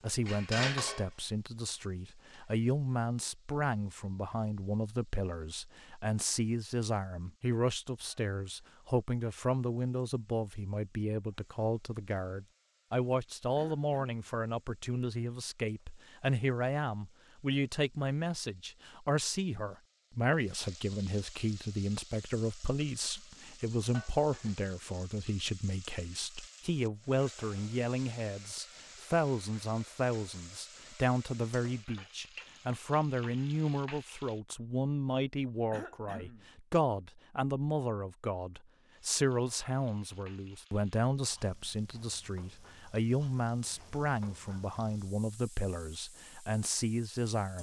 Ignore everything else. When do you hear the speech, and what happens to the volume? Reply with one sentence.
The speech can be heard from 0.0 to 47.5 s, at a steady volume.